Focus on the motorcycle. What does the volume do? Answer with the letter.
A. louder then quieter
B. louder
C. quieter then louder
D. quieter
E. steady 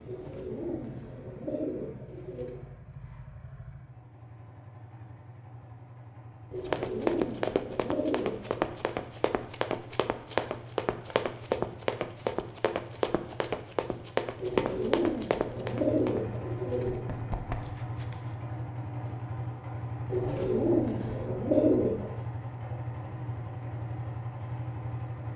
B.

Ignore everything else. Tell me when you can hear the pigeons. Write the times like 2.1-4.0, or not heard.
0.1-2.6, 6.5-8.7, 14.4-17.1, 20.1-22.1.